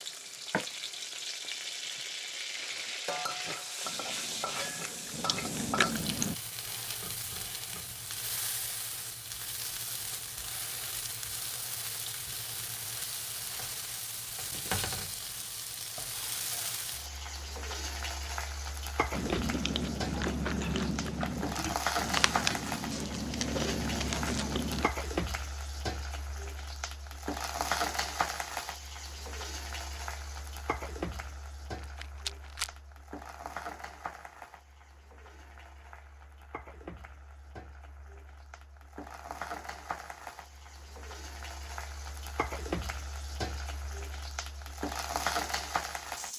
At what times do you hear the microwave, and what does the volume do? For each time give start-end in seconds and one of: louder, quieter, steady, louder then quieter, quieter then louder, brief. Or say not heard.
not heard.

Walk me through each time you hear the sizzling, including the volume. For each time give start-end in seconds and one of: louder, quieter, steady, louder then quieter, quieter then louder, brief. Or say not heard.
0.0-46.3 steady.